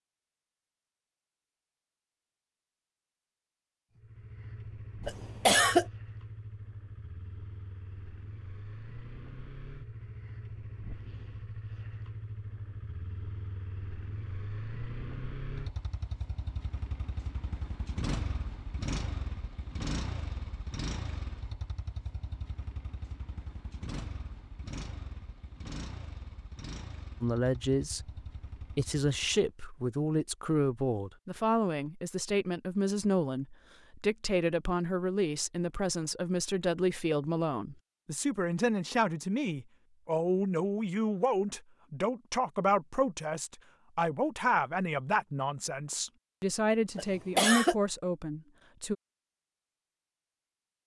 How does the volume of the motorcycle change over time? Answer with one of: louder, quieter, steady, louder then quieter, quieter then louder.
louder then quieter.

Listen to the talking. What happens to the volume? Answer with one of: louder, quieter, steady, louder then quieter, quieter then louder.
steady.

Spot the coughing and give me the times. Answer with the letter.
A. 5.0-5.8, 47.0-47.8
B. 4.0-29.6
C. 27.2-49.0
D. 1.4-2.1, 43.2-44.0
A.